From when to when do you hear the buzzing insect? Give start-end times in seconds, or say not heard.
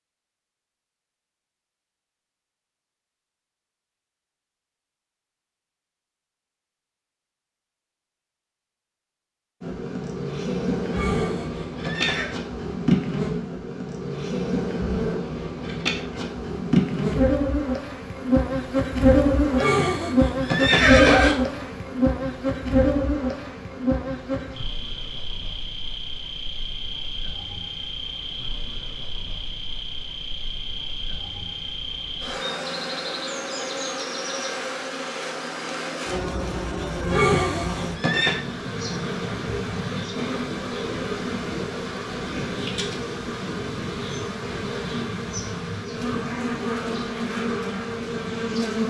9.6-48.8.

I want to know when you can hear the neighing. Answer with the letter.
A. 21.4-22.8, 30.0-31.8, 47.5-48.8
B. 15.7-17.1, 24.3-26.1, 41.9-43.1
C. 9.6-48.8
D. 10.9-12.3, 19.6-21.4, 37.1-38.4
D.